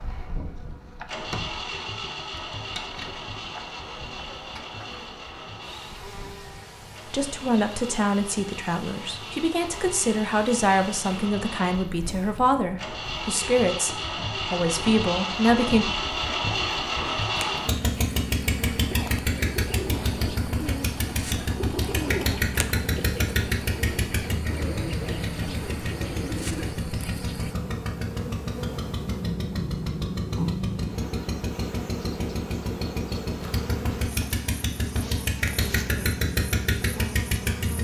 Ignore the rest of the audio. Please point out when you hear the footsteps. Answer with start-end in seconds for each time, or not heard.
not heard.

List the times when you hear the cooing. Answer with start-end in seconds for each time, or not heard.
18.8-26.8.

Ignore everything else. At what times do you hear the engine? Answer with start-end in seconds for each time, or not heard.
0.0-37.7.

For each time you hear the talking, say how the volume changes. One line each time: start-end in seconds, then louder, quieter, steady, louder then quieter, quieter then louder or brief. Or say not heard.
7.1-15.8 steady.